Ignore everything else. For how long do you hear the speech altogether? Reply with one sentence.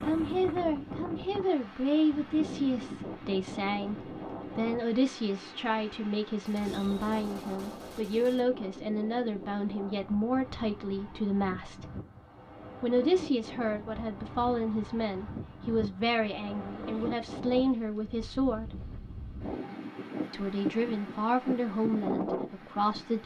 The speech can be heard for 21 seconds in total.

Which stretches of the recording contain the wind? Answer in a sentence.
The wind can be heard from 0.0 to 23.2 s.